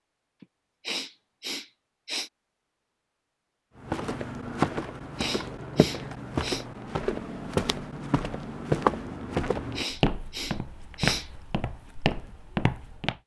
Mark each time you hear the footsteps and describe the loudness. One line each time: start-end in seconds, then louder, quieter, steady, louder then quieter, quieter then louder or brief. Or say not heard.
3.8-13.2 steady.